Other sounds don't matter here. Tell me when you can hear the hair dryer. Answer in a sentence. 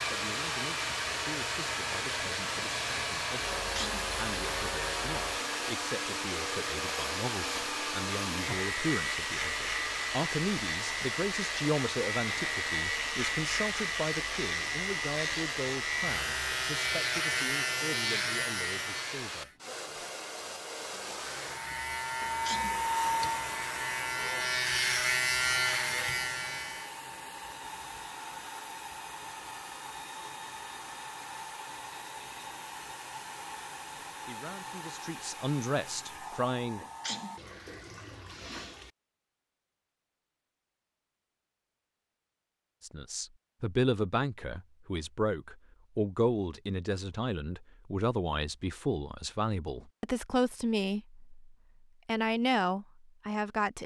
You can hear the hair dryer from 0.0 to 37.4 s.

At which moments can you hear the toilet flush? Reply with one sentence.
You can hear the toilet flush from 37.4 to 38.9 s.